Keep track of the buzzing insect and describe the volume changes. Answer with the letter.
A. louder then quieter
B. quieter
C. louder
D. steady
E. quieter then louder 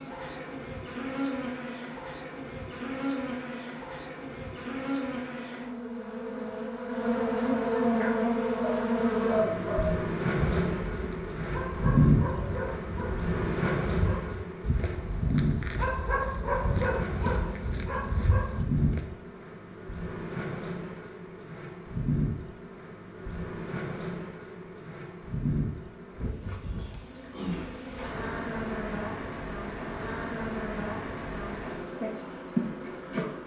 A.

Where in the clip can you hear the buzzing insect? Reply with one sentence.
The buzzing insect can be heard from 0.0 to 33.4 s.